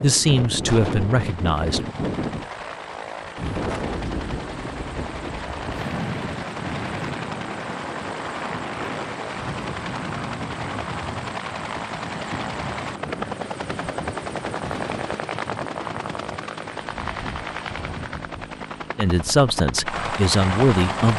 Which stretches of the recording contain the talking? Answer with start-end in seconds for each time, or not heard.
0.0-1.8, 18.9-21.1.